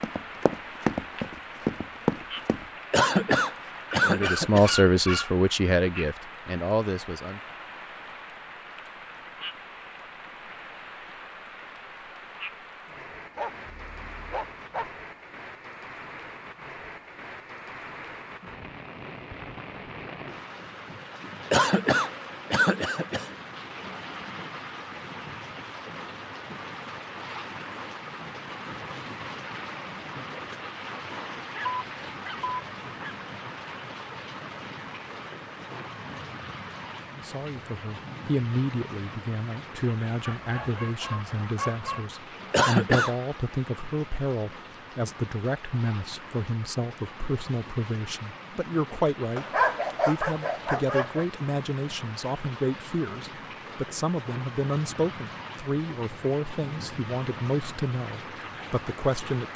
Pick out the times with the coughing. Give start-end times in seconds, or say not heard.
2.9-4.7, 21.5-23.3, 42.5-43.1.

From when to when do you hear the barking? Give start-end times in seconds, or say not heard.
4.0-5.3, 13.3-14.9, 31.6-33.1, 40.2-42.0, 49.4-51.2.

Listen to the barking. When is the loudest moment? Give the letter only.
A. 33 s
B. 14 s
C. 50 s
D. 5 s
C.